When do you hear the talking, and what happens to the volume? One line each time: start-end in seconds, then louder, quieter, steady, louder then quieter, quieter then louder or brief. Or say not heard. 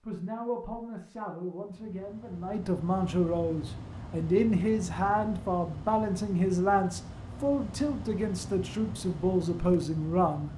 0.0-10.5 louder.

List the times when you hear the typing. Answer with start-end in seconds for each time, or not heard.
not heard.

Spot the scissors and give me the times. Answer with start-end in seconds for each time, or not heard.
not heard.